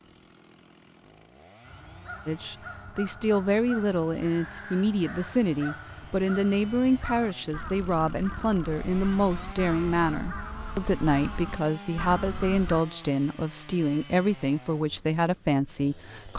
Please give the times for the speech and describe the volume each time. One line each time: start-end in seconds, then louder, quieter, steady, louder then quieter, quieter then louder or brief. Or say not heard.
2.2-16.3 steady.